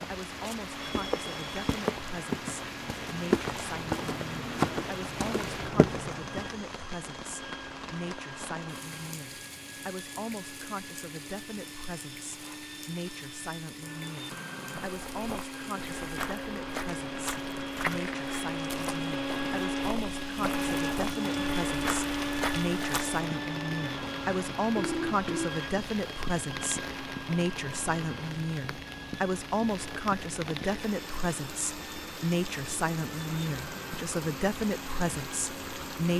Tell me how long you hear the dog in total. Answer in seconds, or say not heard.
not heard.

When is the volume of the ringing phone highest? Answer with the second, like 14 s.
25 s.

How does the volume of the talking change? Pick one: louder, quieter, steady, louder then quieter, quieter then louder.
louder.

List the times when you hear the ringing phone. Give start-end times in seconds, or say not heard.
0.8-1.6, 24.8-25.5.